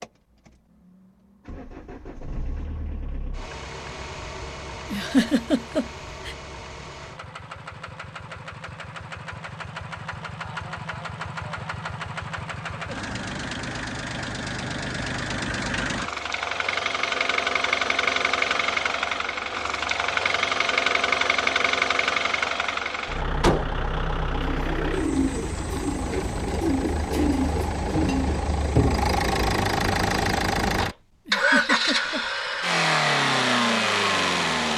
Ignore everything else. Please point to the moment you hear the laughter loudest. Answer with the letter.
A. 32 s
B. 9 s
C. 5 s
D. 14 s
C.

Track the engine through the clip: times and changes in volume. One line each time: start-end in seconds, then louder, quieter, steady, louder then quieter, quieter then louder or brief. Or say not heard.
0.0-34.7 louder.